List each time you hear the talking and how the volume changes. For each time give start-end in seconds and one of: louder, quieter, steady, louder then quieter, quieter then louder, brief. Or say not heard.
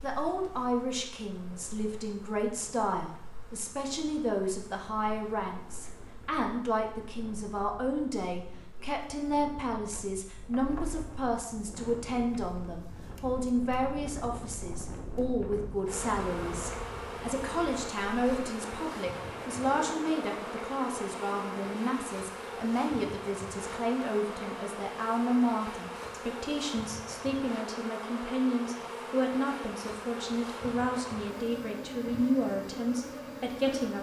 0.0-33.9 steady.